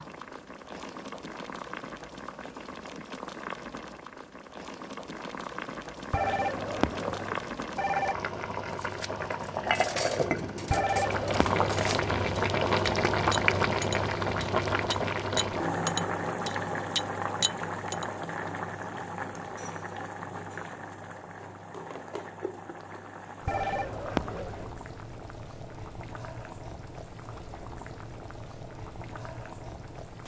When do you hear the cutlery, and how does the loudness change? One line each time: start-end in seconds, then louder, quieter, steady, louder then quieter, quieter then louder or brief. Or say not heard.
8.8-18.1 louder.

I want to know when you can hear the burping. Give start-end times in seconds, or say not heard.
not heard.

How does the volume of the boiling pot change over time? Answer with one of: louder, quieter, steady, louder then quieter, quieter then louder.
louder then quieter.